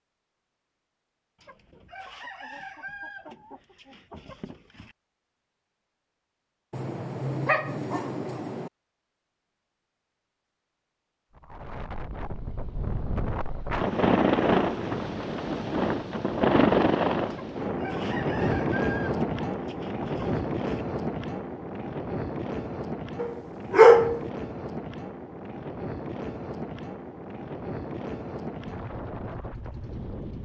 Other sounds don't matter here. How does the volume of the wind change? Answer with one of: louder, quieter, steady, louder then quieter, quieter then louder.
quieter.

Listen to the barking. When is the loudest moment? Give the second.
24 s.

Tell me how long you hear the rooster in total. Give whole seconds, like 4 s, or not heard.
7 s.